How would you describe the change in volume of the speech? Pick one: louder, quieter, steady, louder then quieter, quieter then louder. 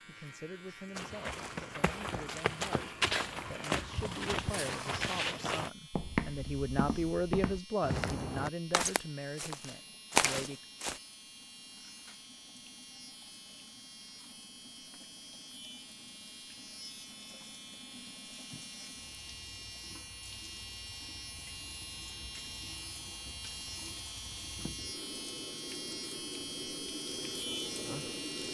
louder then quieter.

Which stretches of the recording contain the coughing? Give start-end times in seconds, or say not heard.
not heard.